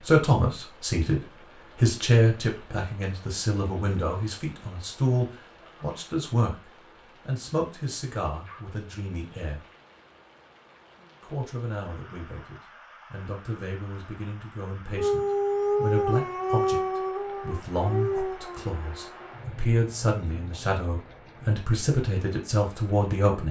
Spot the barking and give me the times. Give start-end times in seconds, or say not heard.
14.9-19.2.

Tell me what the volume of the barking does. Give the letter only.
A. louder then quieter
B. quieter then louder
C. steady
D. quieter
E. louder
D.